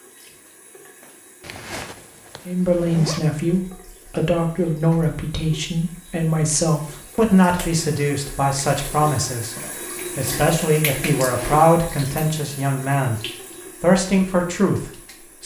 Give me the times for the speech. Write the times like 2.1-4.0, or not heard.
2.5-15.4.